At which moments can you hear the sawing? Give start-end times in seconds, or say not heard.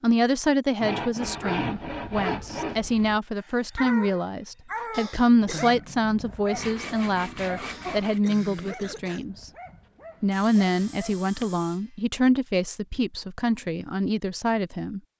0.8-2.8, 6.5-8.2, 10.3-12.1.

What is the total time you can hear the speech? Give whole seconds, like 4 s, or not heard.
14 s.